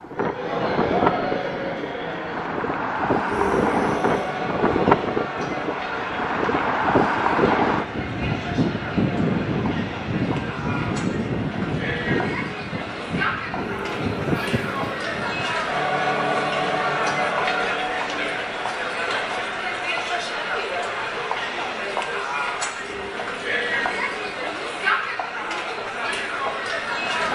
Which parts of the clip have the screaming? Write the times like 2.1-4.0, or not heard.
3.2-4.4, 13.6-15.3, 22.8-24.5.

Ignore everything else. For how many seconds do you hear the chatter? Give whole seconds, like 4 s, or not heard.
27 s.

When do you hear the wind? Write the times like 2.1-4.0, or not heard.
0.0-15.6.